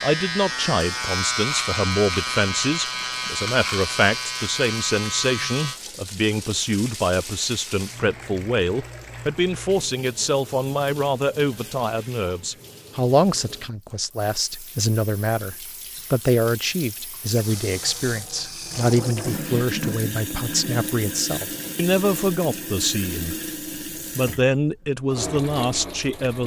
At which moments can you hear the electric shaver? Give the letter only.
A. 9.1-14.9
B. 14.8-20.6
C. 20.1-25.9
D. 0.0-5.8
D.